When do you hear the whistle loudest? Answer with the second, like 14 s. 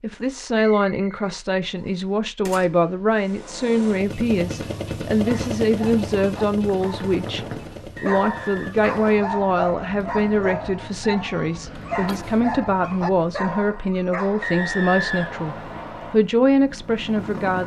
15 s.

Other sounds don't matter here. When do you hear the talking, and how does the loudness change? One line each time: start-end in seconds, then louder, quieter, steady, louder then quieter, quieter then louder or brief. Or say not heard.
0.0-17.6 steady.